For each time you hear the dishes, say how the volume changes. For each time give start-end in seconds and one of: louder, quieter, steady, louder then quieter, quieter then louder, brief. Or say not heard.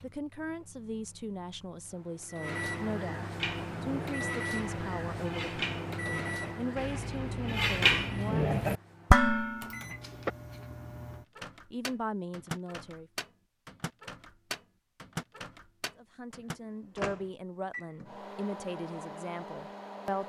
3.4-10.3 louder.